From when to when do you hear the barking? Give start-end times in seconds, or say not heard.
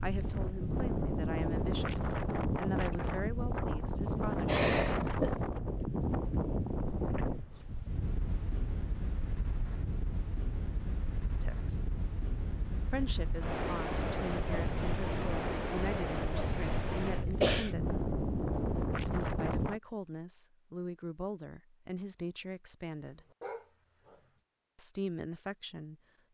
23.0-24.2.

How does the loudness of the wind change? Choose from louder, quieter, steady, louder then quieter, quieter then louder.
quieter then louder.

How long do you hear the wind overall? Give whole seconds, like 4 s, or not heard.
20 s.